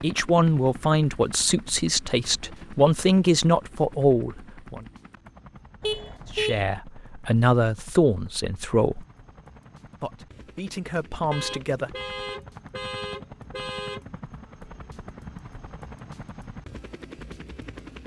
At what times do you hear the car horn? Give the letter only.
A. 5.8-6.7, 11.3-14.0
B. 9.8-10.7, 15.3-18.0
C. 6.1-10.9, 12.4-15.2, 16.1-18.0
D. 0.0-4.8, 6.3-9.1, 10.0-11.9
A.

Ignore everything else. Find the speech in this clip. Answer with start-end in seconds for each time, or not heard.
0.0-4.8, 6.3-9.1, 10.0-11.9.